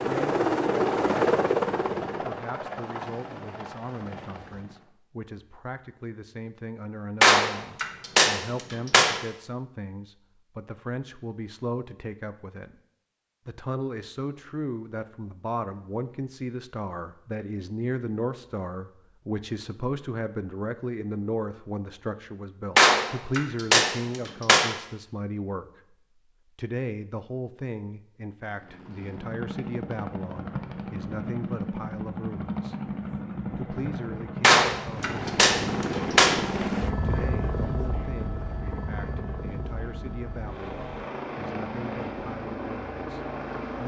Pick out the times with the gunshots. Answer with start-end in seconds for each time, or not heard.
7.2-9.2, 22.8-24.7, 34.4-36.4.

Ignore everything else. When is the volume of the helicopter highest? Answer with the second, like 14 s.
1 s.